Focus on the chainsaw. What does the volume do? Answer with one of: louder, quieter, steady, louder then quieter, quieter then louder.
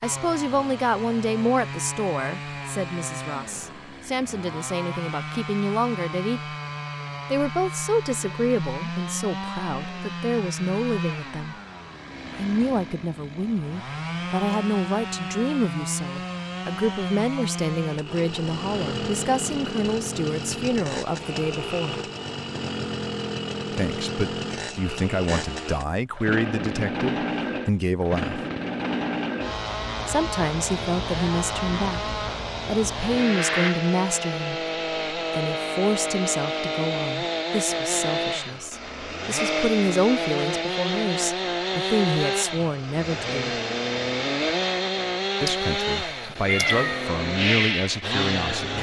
louder.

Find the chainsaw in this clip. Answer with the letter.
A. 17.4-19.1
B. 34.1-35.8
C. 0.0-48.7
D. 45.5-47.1
C.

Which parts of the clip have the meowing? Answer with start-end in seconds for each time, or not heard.
45.5-47.1.